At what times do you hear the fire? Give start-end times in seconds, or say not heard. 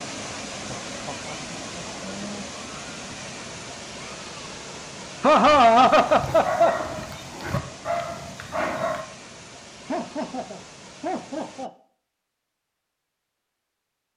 not heard.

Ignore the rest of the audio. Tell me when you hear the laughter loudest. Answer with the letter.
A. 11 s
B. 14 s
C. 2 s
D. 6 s
D.